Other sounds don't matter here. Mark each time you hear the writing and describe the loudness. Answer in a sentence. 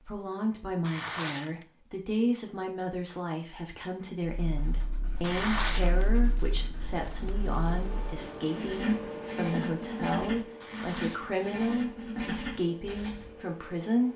The writing can be heard from 4.2 to 13.4 s, getting louder.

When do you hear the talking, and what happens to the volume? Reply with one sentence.
The talking can be heard from 0.1 to 14.1 s, at a steady volume.